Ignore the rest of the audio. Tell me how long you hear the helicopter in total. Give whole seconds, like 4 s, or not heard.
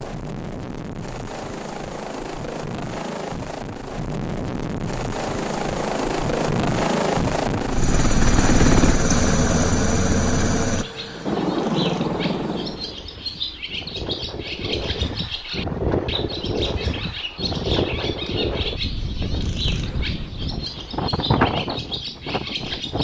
13 s.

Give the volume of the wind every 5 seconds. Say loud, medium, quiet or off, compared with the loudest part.
off, off, medium, loud, loud.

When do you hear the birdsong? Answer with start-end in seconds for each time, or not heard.
10.7-22.9.